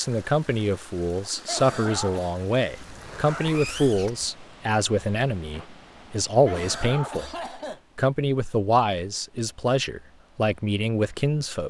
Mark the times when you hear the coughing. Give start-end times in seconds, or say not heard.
1.4-2.4, 6.5-7.8.